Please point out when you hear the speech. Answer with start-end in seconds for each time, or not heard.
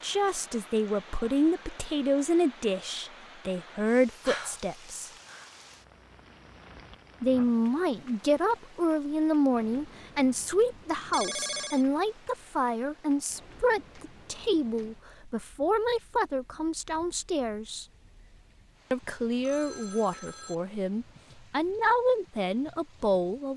0.0-5.1, 7.2-17.9, 18.9-23.5.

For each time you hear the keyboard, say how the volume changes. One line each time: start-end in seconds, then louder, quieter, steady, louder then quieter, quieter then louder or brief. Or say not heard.
not heard.